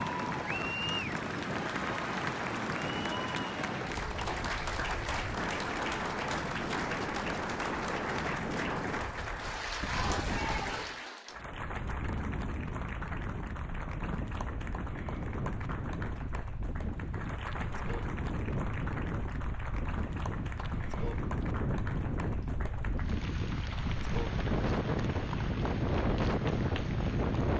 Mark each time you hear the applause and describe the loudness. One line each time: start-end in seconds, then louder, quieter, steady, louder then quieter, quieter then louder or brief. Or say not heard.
0.0-27.5 quieter.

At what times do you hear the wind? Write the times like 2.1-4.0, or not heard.
0.0-27.5.